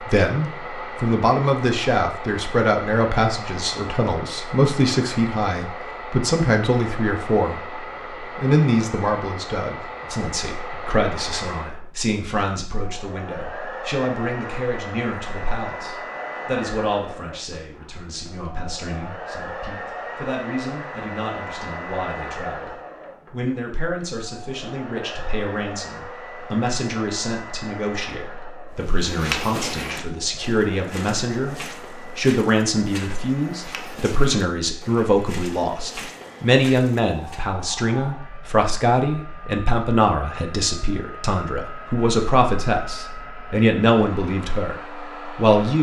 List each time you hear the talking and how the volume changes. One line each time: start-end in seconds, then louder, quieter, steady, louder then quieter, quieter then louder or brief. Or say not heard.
0.0-45.7 quieter then louder.